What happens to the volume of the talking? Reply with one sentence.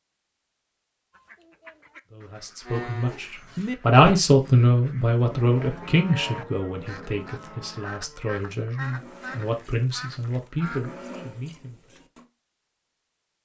The volume of the talking goes down.